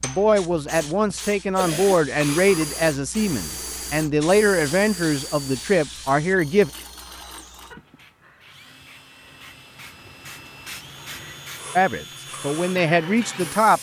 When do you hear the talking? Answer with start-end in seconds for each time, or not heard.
0.0-6.7, 11.8-13.7.